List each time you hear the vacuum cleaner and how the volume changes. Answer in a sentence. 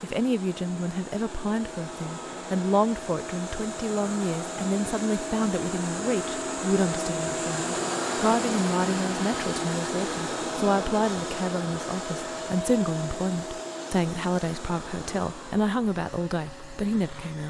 The vacuum cleaner can be heard from 0.0 to 17.4 s, getting louder then quieter.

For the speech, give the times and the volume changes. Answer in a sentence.
You can hear the speech from 0.0 to 17.4 s, at a steady volume.